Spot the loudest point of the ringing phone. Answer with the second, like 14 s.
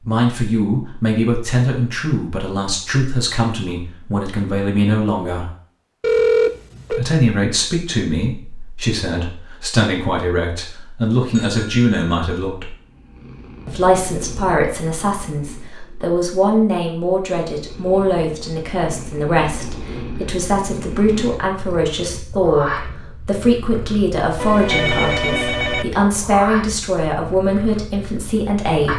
6 s.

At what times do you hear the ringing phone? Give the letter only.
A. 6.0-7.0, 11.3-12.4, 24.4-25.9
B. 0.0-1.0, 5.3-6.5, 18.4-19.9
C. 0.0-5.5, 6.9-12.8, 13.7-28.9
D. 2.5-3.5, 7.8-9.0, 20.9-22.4
A.